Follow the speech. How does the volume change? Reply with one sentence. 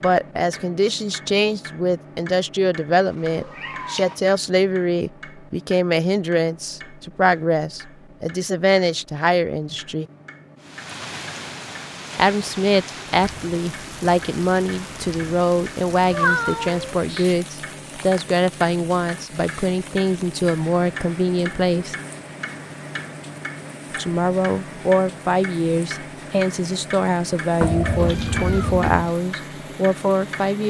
The loudness of the speech stays about the same.